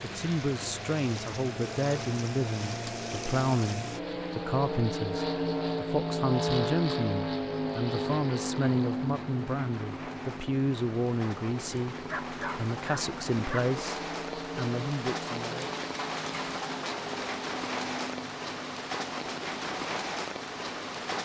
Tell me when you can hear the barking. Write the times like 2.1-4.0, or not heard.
12.1-13.7.